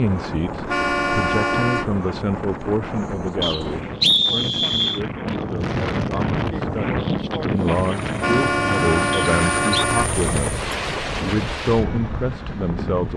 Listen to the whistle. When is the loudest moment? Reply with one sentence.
The volume of the whistle peaks at 4 seconds.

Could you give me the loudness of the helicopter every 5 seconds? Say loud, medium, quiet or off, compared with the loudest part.
off, loud, loud.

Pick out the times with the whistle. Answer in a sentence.
You can hear the whistle from 3.4 to 5.0 s and from 9.1 to 9.8 s.